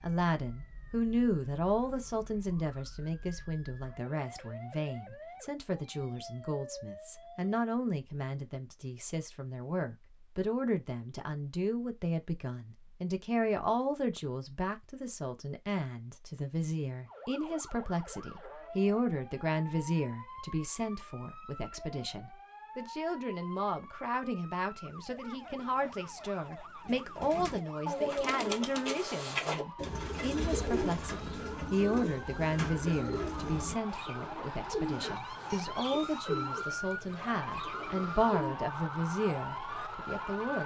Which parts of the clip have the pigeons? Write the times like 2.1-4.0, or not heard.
26.9-38.5.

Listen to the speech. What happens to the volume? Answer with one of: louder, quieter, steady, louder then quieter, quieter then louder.
steady.